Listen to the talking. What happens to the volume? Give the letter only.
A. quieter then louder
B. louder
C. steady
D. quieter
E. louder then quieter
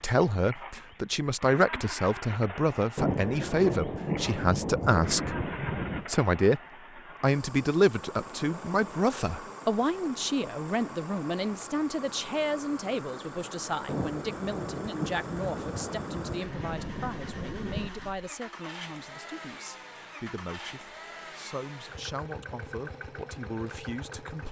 D.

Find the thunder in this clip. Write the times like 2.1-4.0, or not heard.
3.0-6.0, 13.8-17.9.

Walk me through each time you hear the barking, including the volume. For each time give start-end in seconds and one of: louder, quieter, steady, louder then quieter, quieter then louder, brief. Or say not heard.
not heard.